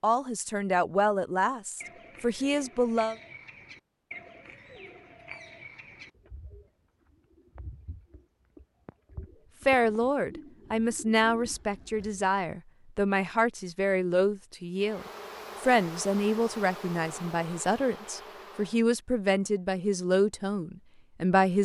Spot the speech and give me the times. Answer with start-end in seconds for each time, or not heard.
0.0-3.1, 9.7-21.5.